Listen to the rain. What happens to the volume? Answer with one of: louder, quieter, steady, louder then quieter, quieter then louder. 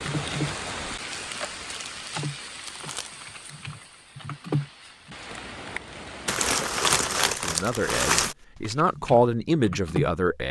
quieter then louder.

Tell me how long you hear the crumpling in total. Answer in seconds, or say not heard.
4 s.